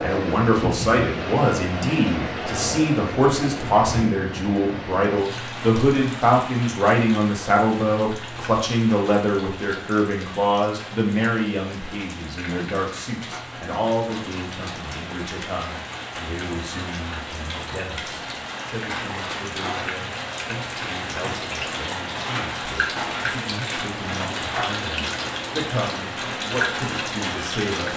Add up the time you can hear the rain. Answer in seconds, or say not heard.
28 s.